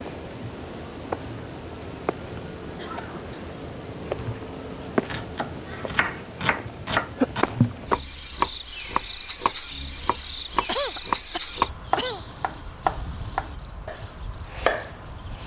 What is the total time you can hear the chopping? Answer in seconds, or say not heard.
10 s.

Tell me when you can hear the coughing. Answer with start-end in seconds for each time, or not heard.
2.8-3.3, 10.7-12.3.